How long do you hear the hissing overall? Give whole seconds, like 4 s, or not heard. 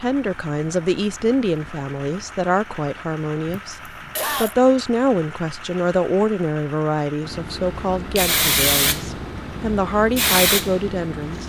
4 s.